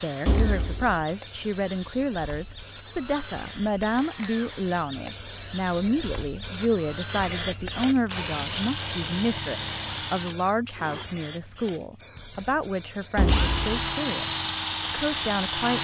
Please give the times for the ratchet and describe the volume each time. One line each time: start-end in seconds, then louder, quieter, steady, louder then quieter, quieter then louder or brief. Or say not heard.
not heard.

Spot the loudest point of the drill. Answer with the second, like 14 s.
14 s.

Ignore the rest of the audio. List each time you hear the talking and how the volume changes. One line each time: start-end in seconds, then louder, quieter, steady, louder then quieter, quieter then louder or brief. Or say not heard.
0.0-15.8 steady.